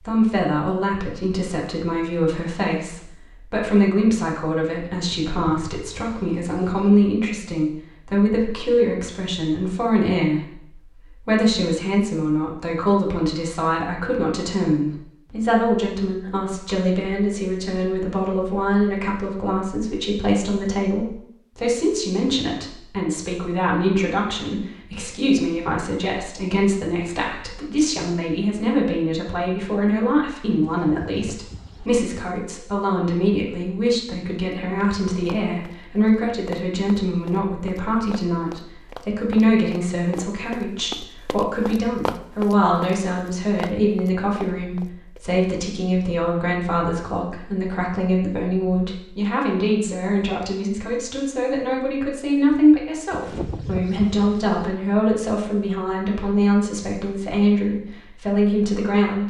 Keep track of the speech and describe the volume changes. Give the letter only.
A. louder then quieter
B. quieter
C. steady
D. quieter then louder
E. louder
C.